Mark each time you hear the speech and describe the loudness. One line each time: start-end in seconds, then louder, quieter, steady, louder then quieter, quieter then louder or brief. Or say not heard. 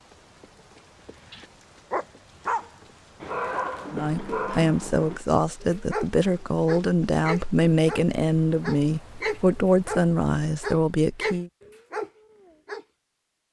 3.9-11.5 steady.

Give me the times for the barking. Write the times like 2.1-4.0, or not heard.
1.3-12.8.